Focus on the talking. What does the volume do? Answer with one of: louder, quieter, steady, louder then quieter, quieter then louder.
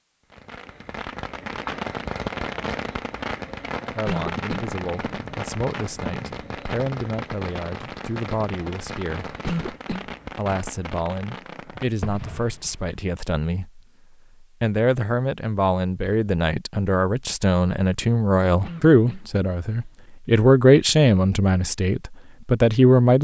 louder.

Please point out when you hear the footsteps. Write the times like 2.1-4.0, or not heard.
not heard.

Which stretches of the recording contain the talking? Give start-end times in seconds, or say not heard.
3.9-9.3, 10.3-13.8, 14.4-23.1.